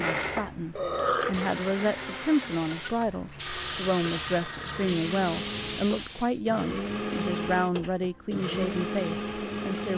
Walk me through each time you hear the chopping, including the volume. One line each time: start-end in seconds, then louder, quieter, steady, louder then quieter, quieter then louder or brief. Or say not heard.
not heard.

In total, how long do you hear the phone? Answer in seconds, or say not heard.
2 s.